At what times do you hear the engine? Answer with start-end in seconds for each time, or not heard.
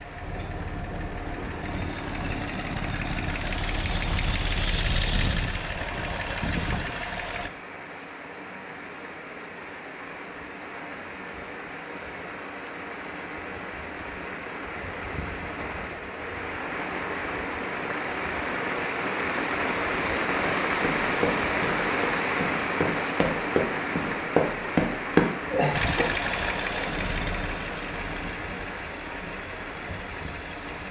0.0-7.5, 25.7-30.8.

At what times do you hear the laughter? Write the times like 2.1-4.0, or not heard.
25.5-26.1.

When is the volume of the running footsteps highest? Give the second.
25 s.